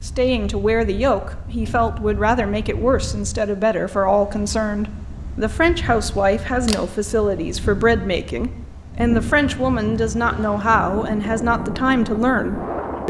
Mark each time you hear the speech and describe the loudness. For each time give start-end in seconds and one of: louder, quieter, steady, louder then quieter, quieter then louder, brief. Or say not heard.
0.0-13.0 steady.